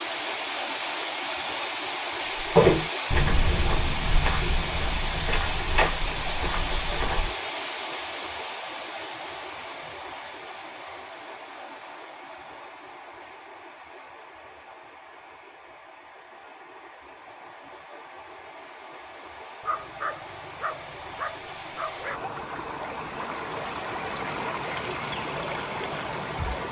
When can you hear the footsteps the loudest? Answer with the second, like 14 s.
3 s.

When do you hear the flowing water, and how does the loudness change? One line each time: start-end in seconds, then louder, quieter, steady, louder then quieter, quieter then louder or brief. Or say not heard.
0.0-26.6 quieter then louder.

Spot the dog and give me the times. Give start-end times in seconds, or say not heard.
19.6-22.3.